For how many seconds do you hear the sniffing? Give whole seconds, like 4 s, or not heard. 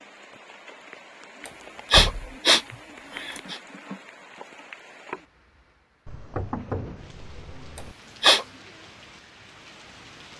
3 s.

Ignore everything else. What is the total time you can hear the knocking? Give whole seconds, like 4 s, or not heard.
2 s.